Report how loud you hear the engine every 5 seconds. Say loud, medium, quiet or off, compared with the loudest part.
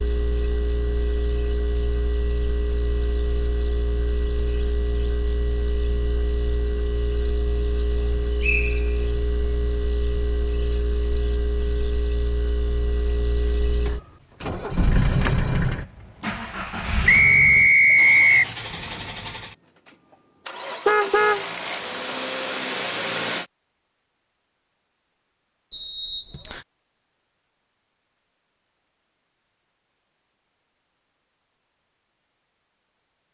loud, loud, loud, loud, loud, off, off.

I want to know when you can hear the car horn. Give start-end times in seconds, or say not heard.
20.9-22.0.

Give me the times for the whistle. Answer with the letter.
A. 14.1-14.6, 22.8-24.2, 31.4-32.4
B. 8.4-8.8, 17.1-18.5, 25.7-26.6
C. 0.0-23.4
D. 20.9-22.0
B.